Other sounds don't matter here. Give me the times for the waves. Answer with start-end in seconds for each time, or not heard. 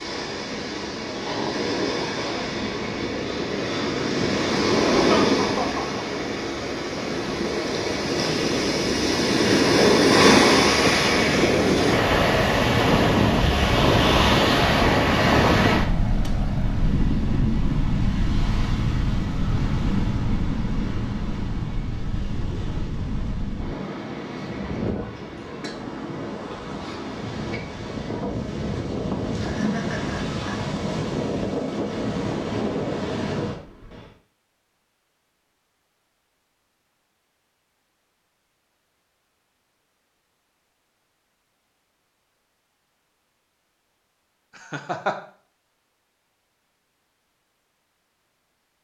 0.0-34.1.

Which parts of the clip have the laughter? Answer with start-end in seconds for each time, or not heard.
4.8-6.0, 29.4-30.6, 44.6-45.1.